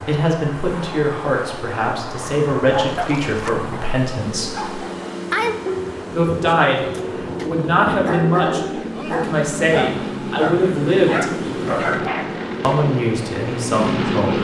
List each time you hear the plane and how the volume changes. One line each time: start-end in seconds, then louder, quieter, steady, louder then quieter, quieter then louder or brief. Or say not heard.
0.0-14.3 louder.